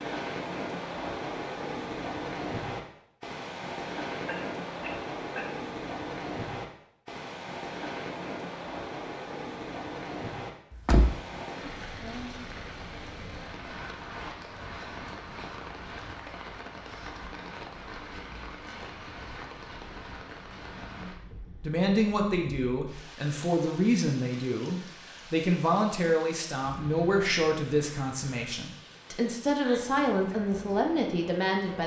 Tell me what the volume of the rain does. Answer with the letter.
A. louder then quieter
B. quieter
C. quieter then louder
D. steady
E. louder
B.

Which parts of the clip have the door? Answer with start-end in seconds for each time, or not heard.
10.7-11.4.